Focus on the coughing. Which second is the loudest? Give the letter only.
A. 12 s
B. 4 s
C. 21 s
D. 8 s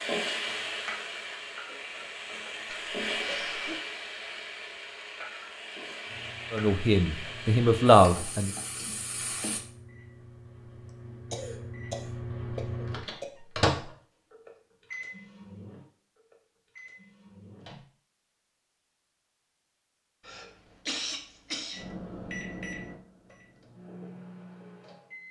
C.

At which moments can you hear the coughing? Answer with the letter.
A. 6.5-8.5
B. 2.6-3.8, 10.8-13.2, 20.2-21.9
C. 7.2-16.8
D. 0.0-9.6
B.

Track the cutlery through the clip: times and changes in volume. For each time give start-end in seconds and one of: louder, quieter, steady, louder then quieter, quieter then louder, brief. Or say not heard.
not heard.